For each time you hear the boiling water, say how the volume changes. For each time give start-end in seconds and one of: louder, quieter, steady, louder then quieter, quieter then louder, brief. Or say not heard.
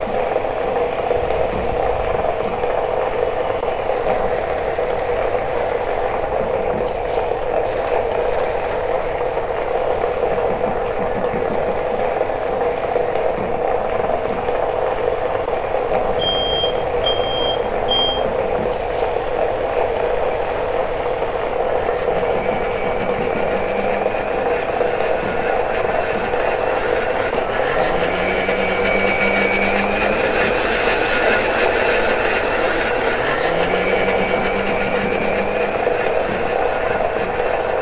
0.0-37.7 steady.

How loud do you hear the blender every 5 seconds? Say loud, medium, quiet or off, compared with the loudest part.
quiet, quiet, quiet, quiet, medium, loud, loud, medium.